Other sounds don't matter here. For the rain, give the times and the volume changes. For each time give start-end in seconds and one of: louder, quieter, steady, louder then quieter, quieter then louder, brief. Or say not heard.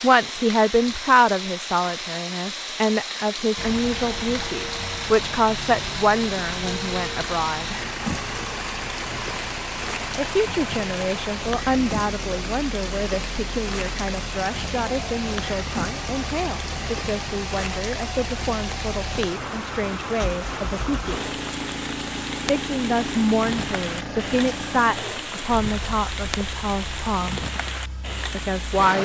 0.0-29.0 steady.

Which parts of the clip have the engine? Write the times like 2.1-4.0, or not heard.
3.5-29.0.